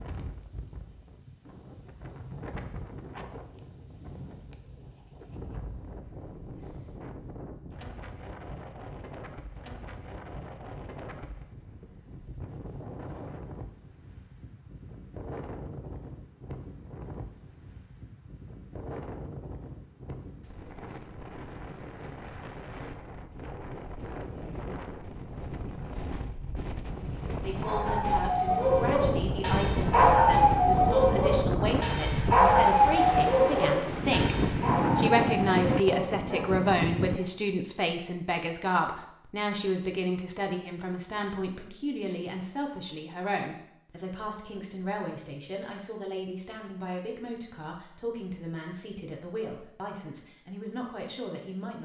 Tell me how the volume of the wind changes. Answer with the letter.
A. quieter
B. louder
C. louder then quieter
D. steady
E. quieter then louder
B.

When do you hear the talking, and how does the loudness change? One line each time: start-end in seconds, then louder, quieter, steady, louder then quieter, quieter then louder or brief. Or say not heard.
27.4-51.7 louder then quieter.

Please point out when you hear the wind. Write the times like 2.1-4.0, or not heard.
0.0-37.2.